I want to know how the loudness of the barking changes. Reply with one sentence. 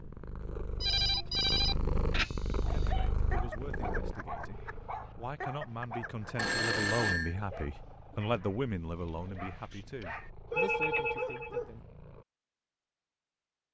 The volume of the barking goes down, then up.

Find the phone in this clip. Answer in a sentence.
The phone can be heard from 0.8 to 2.3 s, from 6.3 to 7.3 s and from 10.5 to 11.6 s.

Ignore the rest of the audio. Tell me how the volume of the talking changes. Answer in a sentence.
The loudness of the talking goes up, then down.